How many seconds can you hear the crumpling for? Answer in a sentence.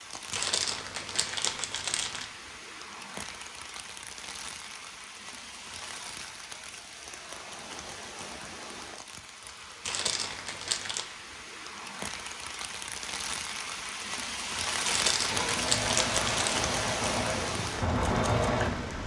The crumpling can be heard for 5 seconds in total.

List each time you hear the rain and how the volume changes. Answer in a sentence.
The rain can be heard from 0.0 to 19.0 s, getting louder.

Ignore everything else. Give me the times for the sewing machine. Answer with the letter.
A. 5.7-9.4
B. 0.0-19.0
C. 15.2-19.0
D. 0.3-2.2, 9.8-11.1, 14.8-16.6
C.